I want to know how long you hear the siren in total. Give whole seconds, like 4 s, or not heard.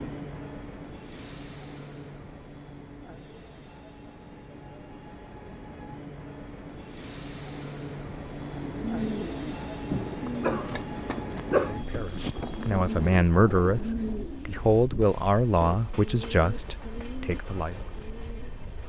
not heard.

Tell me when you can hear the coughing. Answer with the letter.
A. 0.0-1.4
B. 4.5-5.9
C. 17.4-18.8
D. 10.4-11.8
D.